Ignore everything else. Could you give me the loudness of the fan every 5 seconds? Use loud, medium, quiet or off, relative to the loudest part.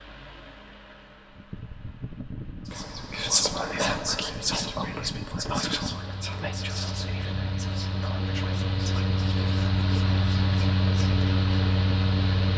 quiet, medium, loud.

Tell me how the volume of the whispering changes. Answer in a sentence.
The loudness of the whispering goes down.